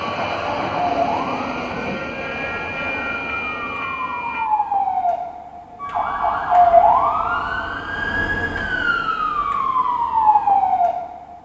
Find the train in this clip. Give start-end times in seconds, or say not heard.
0.0-4.5.